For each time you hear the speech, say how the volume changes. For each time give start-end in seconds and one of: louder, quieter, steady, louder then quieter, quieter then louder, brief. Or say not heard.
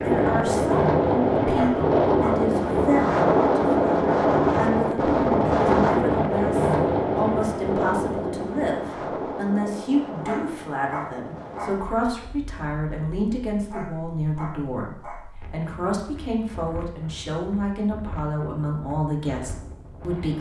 0.0-20.3 steady.